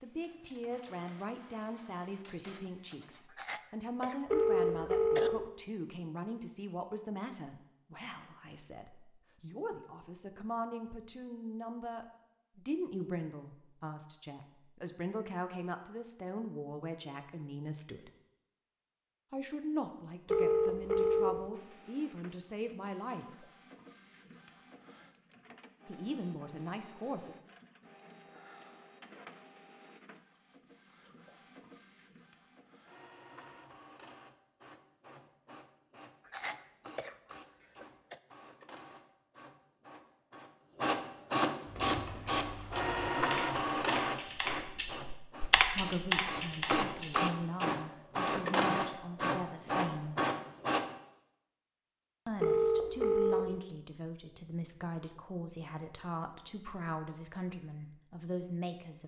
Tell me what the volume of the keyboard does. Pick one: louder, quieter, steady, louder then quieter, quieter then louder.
louder.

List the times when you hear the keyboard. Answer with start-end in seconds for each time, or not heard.
41.6-47.2.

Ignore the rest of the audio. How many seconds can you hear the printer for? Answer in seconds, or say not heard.
33 s.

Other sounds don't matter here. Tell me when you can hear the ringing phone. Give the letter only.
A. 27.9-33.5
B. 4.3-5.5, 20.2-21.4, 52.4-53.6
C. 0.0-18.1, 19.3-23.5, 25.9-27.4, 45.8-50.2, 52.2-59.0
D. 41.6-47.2
B.